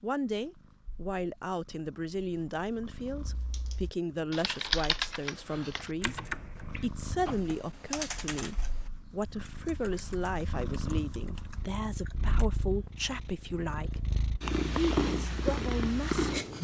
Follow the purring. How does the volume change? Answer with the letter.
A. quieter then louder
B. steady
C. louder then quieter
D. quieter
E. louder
E.